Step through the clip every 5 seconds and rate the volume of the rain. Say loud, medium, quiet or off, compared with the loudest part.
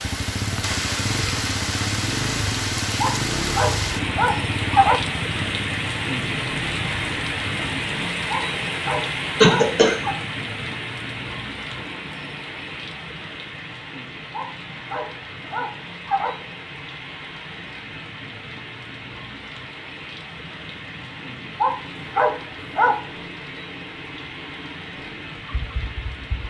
loud, loud, medium, medium, medium, medium.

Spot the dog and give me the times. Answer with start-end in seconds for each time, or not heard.
3.0-5.0, 8.3-10.2, 14.3-16.4, 21.6-23.1.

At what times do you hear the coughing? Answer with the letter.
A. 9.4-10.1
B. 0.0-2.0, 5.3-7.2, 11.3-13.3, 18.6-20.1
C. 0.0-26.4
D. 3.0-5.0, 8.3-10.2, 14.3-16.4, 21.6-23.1
A.